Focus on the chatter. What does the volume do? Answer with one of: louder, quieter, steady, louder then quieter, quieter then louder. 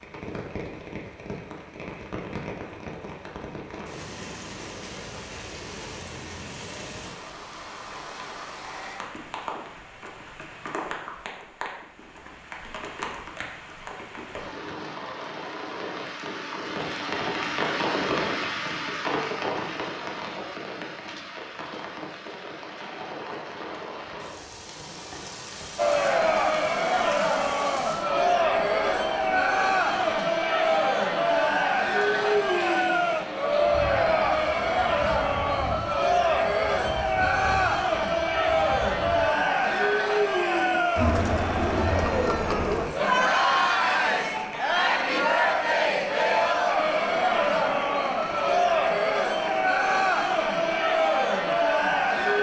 steady.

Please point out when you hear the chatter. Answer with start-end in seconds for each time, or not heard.
25.8-52.3.